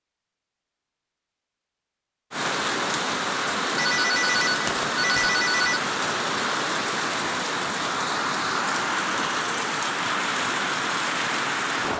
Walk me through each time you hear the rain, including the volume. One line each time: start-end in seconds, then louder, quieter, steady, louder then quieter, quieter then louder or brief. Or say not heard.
2.3-11.9 steady.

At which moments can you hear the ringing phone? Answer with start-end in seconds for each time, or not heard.
3.8-5.8.